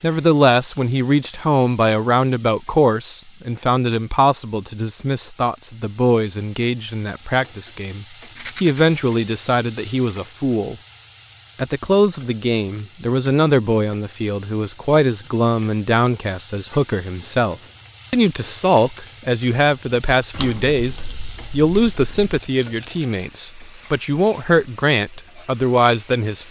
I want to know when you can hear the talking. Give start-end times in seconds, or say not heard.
0.0-10.8, 11.6-26.4.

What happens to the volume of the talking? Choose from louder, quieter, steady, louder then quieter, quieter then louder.
steady.